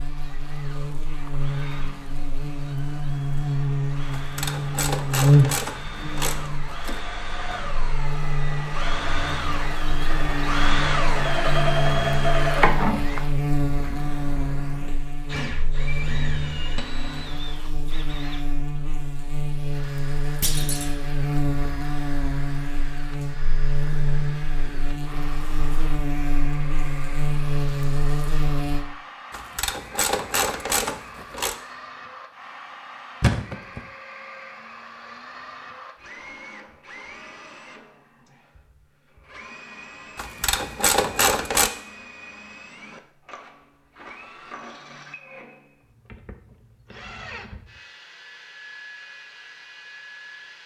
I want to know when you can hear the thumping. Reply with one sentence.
The thumping can be heard from 20.4 to 20.9 s and from 33.2 to 33.8 s.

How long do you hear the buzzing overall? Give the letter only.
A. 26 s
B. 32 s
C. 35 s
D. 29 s
D.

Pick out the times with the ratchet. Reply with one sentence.
The ratchet can be heard from 4.1 to 7.0 s, from 29.3 to 31.6 s and from 40.1 to 41.7 s.